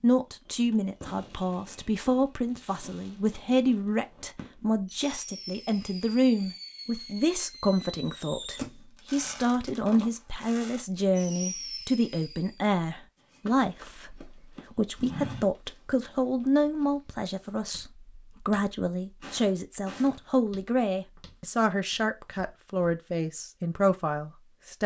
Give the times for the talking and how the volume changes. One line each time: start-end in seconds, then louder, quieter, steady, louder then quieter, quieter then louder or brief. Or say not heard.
0.0-24.8 steady.